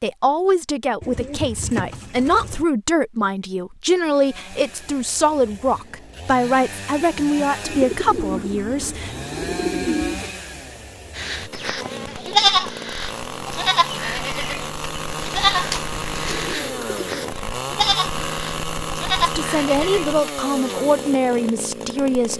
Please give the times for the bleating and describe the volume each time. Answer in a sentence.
The bleating can be heard from 11.2 to 20.8 s, getting quieter.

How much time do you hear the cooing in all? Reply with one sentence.
The cooing can be heard for 6 seconds in total.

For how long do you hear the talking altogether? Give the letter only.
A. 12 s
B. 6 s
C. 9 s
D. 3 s
A.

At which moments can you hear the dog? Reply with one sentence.
You can't hear the dog here.